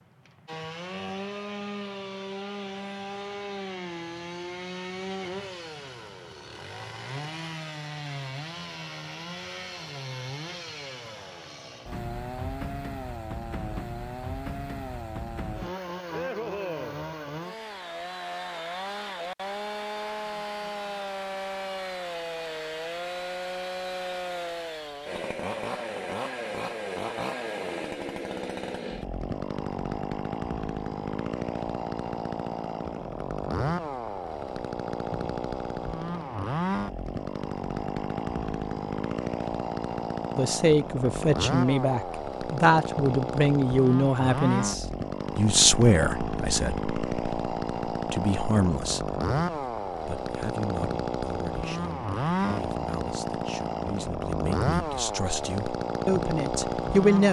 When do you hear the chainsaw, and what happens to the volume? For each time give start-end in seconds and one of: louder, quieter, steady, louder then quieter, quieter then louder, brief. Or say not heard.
0.0-57.2 louder.